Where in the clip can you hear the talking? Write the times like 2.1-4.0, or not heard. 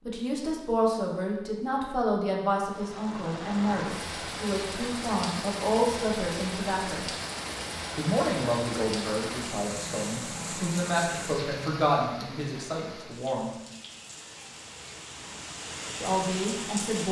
0.1-7.0, 8.0-13.5, 16.0-17.0.